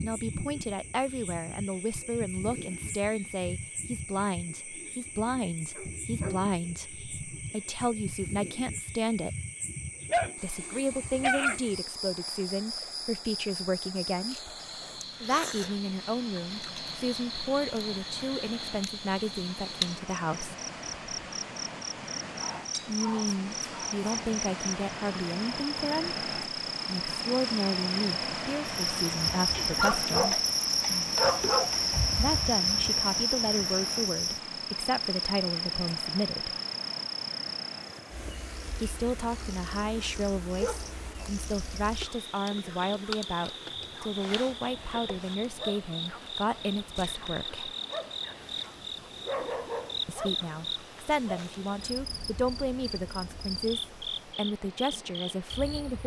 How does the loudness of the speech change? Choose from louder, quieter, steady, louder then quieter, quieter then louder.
steady.